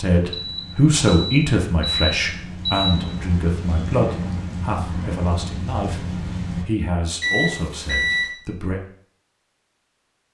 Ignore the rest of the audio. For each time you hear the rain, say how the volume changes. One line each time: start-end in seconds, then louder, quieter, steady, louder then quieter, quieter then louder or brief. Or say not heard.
0.1-6.7 louder.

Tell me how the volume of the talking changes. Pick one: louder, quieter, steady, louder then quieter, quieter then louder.
quieter.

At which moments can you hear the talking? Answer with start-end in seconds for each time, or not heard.
0.0-8.8.